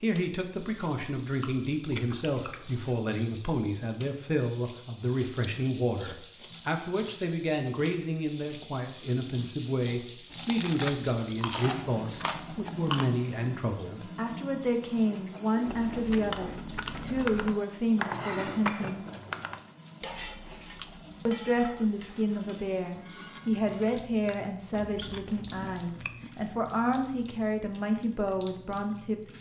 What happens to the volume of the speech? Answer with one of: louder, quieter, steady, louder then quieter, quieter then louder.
steady.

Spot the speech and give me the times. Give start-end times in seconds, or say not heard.
0.0-19.1, 21.2-29.3.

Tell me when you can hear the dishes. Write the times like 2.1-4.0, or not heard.
16.9-25.1.